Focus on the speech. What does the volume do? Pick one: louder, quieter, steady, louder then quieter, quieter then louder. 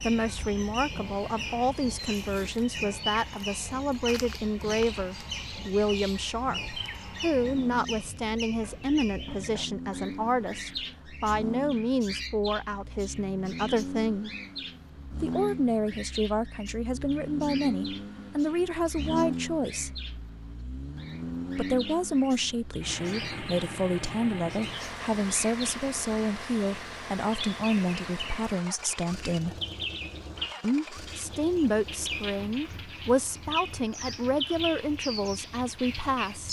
steady.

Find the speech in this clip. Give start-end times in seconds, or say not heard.
0.0-14.3, 15.2-19.9, 21.6-29.6, 30.6-36.4.